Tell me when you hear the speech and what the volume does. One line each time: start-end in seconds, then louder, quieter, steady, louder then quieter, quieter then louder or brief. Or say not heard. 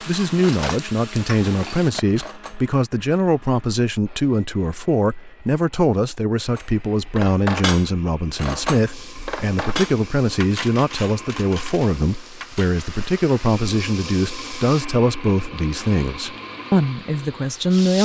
0.0-18.0 steady.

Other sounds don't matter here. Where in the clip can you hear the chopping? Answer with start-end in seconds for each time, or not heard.
not heard.